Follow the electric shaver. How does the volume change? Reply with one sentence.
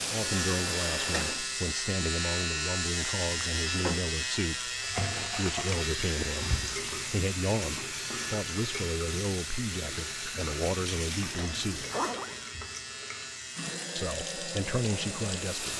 The loudness of the electric shaver goes down.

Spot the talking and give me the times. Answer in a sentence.
You can hear the talking from 0.1 to 11.8 s and from 13.9 to 15.7 s.